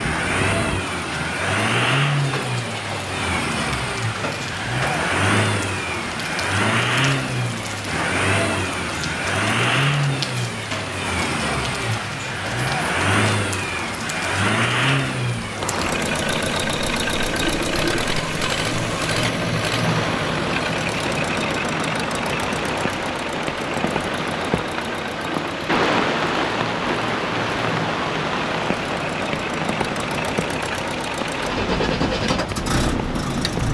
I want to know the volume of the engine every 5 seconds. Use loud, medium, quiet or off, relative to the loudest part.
loud, loud, loud, loud, loud, medium, loud.